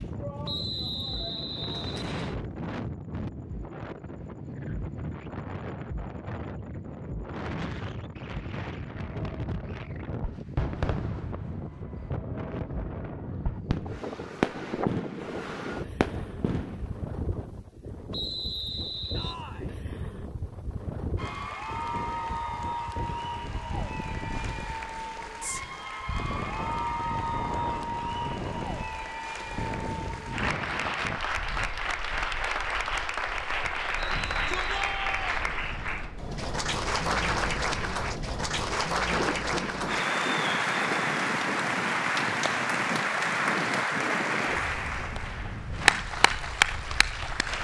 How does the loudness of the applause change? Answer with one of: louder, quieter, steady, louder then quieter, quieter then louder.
louder.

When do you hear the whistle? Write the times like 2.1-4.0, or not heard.
0.5-2.4, 18.1-19.4, 34.1-34.6.